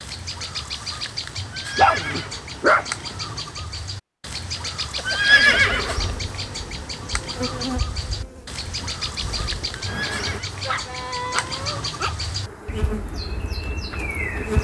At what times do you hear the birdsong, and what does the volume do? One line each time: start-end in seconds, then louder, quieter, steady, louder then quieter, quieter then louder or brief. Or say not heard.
0.0-14.5 steady.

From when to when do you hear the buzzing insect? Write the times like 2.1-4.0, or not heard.
5.0-10.4, 12.4-14.5.